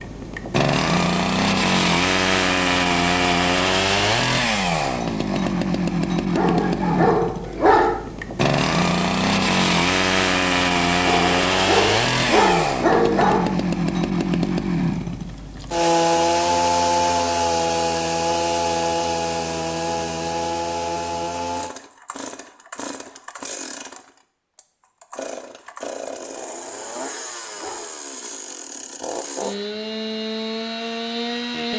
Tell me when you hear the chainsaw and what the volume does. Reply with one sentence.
The chainsaw can be heard from 0.0 to 31.7 s, getting quieter.